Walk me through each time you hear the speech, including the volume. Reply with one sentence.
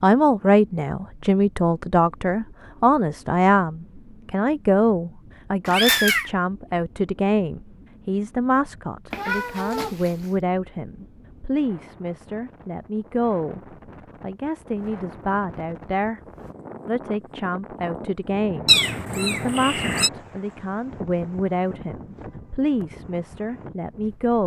You can hear the speech from 0.0 to 13.6 s, getting quieter; briefly from 14.2 to 16.2 s; and from 16.9 to 24.4 s, at a steady volume.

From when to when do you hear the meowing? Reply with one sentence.
You can hear the meowing from 5.7 to 6.3 s, from 9.1 to 10.3 s and from 18.6 to 20.1 s.